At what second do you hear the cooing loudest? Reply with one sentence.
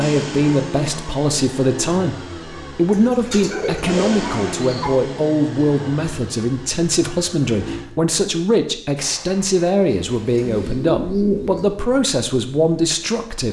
The volume of the cooing peaks at 11 seconds.